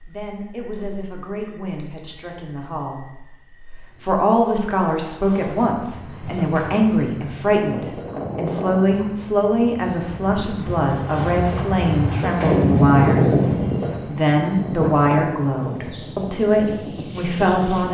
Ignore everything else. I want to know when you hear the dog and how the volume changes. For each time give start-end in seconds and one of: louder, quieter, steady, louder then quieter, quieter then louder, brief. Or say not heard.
not heard.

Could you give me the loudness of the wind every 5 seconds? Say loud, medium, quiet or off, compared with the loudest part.
off, medium, loud, medium.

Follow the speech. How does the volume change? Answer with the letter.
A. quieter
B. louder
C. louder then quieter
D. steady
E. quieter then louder
B.